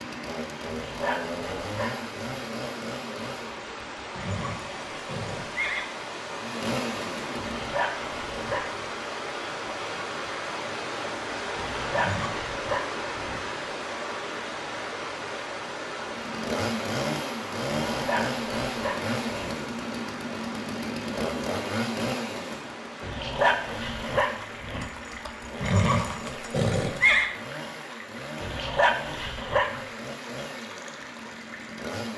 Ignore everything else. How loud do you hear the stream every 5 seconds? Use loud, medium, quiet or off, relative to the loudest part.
medium, loud, loud, loud, medium, medium, medium.